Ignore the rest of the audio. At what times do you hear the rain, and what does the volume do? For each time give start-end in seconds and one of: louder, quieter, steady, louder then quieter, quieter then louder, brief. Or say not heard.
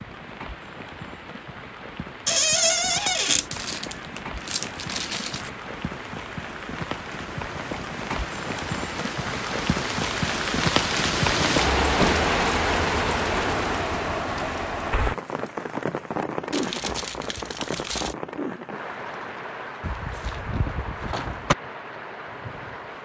0.0-23.0 louder then quieter.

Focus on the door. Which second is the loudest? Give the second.
3 s.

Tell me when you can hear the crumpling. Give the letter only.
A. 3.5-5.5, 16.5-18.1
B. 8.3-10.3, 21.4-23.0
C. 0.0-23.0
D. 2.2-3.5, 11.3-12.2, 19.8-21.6
A.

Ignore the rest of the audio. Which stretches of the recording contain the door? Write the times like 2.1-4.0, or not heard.
2.2-3.5, 11.3-12.2, 19.8-21.6.